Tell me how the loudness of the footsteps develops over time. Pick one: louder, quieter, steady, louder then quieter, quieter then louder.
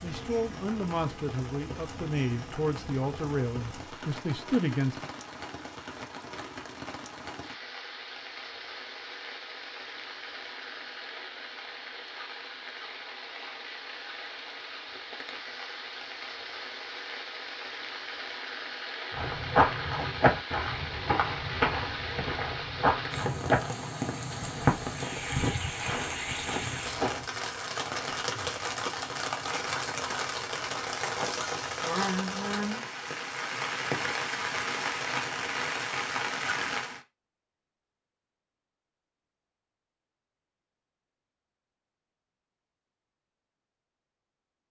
quieter.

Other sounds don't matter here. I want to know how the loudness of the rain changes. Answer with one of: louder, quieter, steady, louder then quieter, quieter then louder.
louder.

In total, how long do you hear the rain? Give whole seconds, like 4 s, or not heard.
37 s.